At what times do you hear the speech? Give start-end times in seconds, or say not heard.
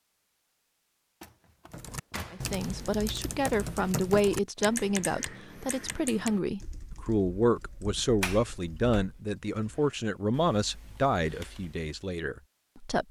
2.3-13.0.